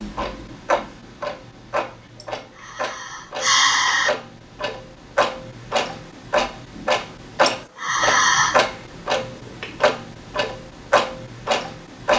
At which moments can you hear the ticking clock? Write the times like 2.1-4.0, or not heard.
0.0-12.1.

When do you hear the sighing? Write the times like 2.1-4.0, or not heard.
2.2-4.1, 7.5-8.6.